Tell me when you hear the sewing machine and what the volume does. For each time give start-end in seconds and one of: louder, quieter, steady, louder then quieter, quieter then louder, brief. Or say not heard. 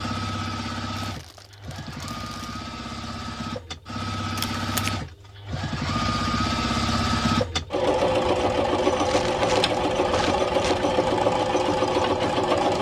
0.0-12.7 louder.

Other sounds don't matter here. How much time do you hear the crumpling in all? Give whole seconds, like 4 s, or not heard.
4 s.